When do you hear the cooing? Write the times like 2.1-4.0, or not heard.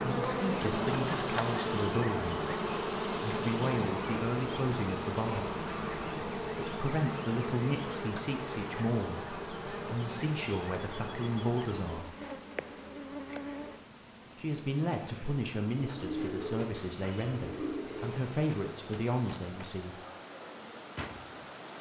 15.8-18.2.